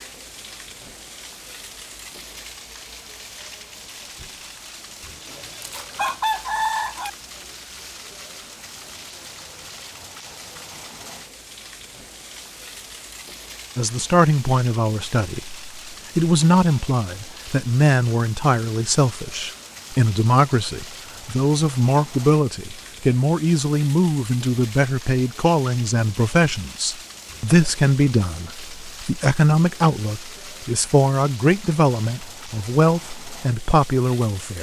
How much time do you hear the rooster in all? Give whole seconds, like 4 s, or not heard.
2 s.